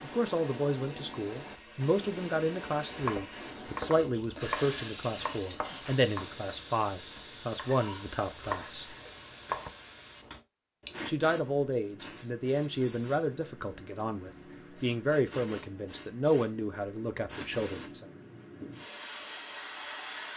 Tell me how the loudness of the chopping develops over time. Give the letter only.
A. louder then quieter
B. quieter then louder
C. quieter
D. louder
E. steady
B.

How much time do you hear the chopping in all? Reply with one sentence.
You can hear the chopping for 7 seconds altogether.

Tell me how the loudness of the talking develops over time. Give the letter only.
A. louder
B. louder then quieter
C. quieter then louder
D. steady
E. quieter
D.